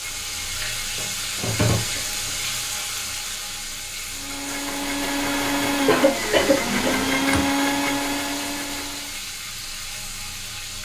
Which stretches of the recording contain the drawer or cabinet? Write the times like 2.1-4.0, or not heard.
1.4-2.4, 6.5-7.5.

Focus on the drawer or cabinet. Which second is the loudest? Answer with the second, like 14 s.
2 s.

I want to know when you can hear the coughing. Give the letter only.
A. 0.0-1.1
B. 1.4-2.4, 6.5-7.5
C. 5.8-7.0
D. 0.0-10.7
C.